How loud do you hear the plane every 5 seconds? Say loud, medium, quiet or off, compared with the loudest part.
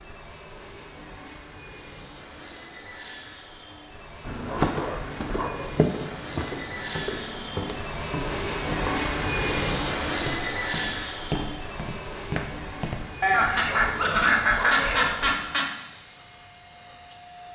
quiet, loud, loud, quiet.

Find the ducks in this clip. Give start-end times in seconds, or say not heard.
13.2-15.7.